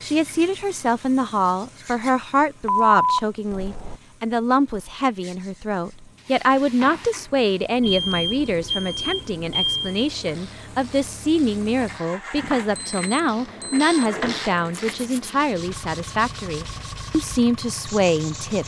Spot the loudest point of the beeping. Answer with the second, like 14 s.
3 s.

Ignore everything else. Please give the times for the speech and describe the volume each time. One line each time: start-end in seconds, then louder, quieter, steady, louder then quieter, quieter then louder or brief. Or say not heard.
0.0-18.6 steady.